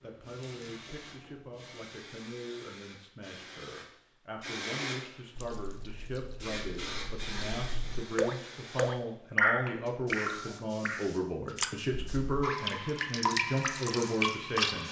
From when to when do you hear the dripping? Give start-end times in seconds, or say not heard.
5.3-14.8.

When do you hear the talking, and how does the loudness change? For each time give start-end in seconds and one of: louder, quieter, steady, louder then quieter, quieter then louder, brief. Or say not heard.
0.0-14.8 louder.